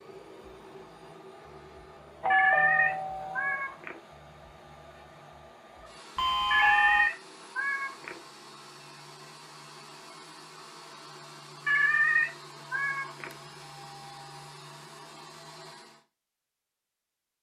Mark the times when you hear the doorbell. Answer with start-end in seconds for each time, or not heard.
2.2-3.6, 6.2-7.1, 13.3-14.4.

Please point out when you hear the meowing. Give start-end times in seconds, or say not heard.
2.3-4.0, 6.5-8.2, 11.7-13.3.